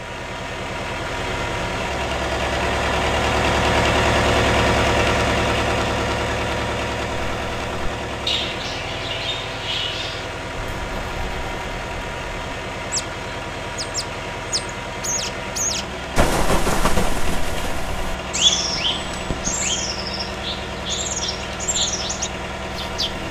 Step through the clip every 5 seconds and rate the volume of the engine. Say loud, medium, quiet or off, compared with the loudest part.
loud, loud, medium, medium, medium.